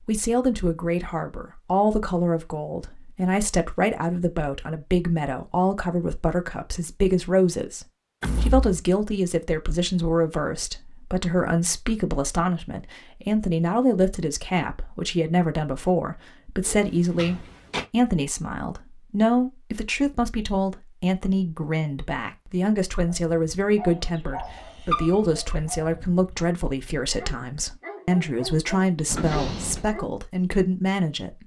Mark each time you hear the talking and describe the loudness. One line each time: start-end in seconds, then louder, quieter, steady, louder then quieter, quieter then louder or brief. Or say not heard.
0.0-31.4 steady.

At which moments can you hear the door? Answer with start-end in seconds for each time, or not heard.
8.2-8.8, 16.6-17.9, 29.1-29.9.